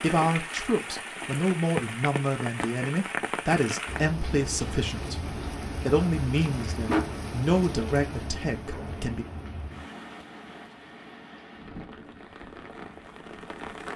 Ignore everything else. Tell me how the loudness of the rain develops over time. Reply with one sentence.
The volume of the rain goes down.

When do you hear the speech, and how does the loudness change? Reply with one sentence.
The speech can be heard from 0.0 to 9.2 s, at a steady volume.